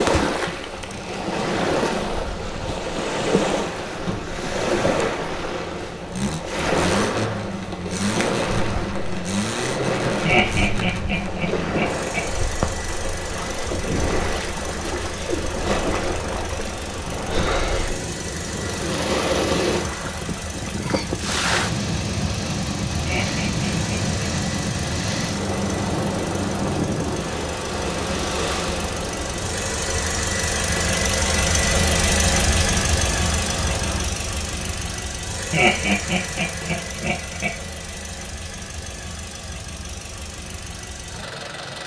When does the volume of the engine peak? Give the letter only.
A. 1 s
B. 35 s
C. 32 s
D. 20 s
C.